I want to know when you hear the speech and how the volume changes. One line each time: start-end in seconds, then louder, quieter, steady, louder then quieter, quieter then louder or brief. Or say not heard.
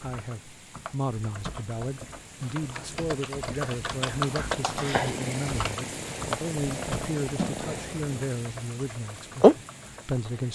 0.0-10.5 steady.